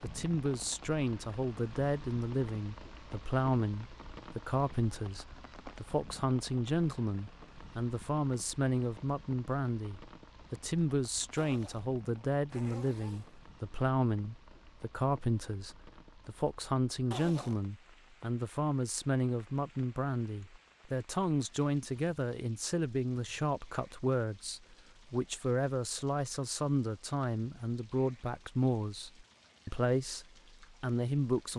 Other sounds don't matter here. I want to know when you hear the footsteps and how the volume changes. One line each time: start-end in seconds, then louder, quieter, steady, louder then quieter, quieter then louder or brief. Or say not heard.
not heard.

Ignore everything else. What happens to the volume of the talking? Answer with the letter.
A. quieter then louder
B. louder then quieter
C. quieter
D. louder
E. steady
E.